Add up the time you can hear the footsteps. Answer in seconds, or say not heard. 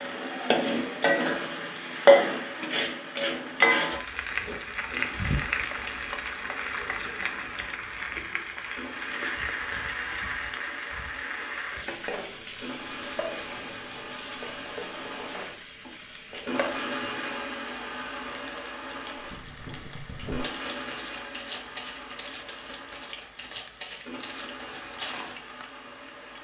6 s.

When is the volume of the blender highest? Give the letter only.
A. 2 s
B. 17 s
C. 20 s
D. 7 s
B.